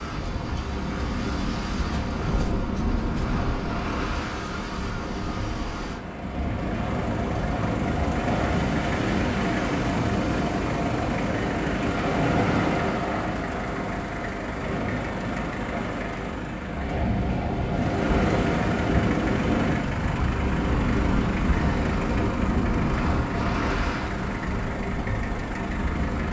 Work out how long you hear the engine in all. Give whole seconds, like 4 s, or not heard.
26 s.